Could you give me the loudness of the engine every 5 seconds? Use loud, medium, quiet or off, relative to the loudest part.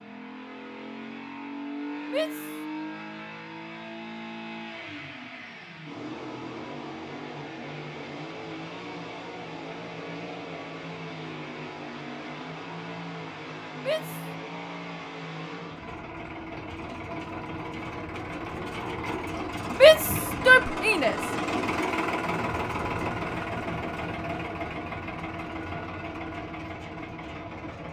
medium, medium, medium, medium, loud, medium.